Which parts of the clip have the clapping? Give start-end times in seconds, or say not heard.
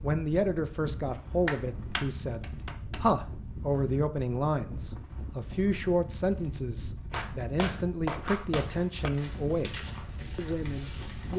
1.4-3.0, 7.1-9.1.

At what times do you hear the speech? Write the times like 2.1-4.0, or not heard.
0.0-11.3.